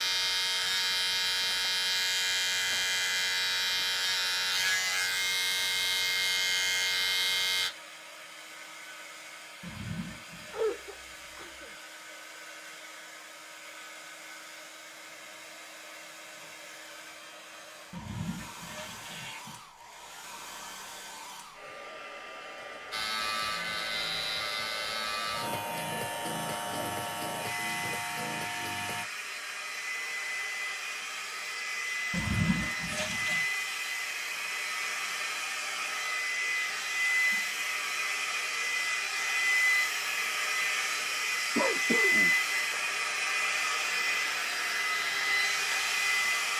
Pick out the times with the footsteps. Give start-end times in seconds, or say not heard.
not heard.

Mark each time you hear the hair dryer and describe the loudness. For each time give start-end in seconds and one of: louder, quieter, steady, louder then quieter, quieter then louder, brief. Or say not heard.
0.0-46.5 louder.